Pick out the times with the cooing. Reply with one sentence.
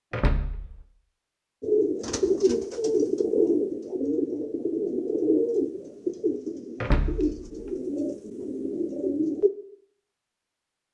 The cooing can be heard from 1.6 to 9.5 s.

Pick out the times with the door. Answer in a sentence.
The door can be heard from 0.1 to 0.8 s and from 6.8 to 7.7 s.